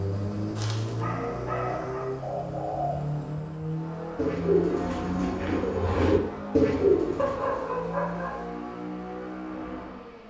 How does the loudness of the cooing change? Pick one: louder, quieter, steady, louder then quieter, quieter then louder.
quieter then louder.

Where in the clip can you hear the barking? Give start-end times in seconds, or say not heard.
0.6-2.1, 7.2-8.4.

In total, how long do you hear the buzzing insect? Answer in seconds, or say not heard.
not heard.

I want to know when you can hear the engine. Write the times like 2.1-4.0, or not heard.
0.0-10.2.